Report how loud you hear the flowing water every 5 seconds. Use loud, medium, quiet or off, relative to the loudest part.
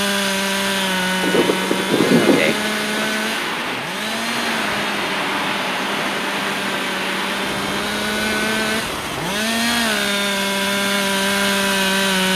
loud, loud, medium.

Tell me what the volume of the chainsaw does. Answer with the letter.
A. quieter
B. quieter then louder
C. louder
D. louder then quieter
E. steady
B.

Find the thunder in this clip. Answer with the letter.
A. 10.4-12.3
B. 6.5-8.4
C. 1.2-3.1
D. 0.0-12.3
C.